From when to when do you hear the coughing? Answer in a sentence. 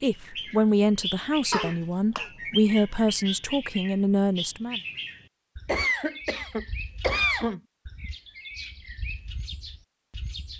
You can hear the coughing from 1.5 to 2.3 s and from 5.7 to 7.6 s.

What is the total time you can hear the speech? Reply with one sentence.
You can hear the speech for 5 seconds altogether.